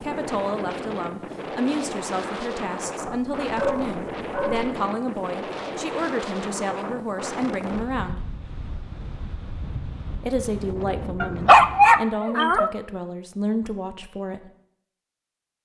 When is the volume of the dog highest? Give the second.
12 s.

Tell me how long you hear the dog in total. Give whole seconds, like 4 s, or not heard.
3 s.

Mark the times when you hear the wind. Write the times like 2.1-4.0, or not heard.
0.0-12.1.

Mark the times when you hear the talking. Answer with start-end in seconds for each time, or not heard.
0.0-8.2, 10.2-14.4.